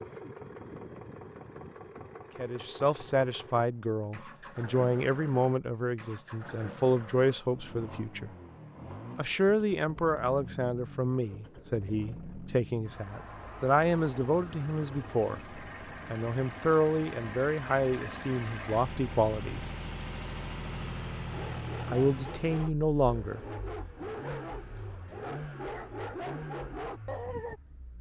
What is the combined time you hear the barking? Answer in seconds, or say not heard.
6 s.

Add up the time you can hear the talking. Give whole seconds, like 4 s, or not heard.
18 s.